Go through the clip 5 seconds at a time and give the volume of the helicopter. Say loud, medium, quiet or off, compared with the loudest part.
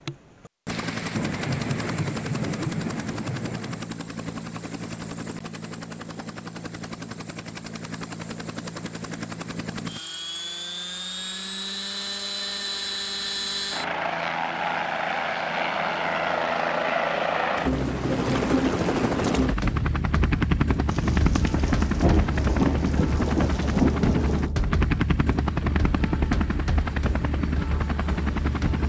medium, medium, medium, loud, loud, loud.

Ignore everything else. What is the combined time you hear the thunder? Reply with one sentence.
The thunder can be heard for 7 seconds in total.